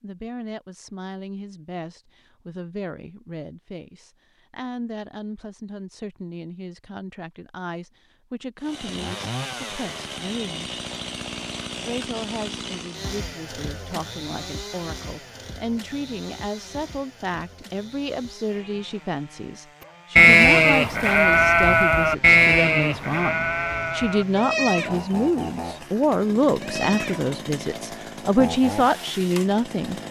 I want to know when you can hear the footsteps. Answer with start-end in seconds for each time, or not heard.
not heard.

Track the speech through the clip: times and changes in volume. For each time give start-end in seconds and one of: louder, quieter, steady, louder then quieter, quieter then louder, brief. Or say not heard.
0.0-10.8 steady
11.8-29.9 louder.